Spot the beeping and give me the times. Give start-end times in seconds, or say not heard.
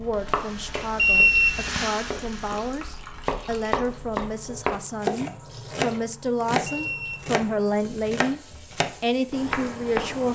0.9-1.9, 6.6-7.3.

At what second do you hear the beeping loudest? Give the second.
1 s.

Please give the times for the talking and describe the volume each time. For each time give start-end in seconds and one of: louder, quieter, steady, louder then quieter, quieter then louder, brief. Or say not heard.
0.0-8.4 louder
9.0-10.3 brief.